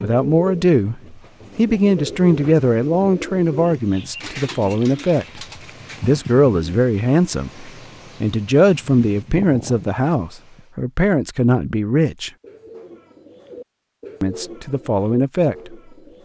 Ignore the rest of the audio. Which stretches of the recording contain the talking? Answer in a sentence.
You can hear the talking from 0.0 to 12.3 s and from 14.2 to 15.8 s.